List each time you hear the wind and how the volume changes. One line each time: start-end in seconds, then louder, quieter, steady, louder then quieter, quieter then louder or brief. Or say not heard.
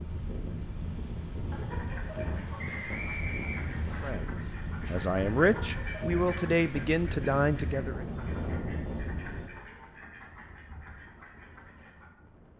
0.0-12.5 quieter.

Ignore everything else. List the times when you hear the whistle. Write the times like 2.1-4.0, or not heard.
2.5-4.1.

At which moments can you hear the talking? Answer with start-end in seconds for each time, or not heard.
4.0-8.1.